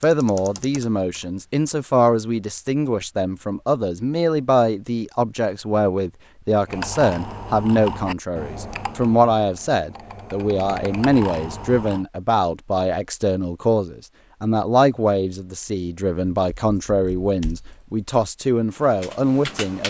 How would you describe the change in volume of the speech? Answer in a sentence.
The loudness of the speech stays about the same.